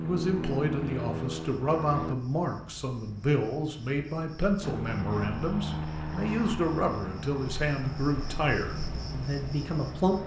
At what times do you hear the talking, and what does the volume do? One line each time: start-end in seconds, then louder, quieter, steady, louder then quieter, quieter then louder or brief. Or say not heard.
0.0-10.2 steady.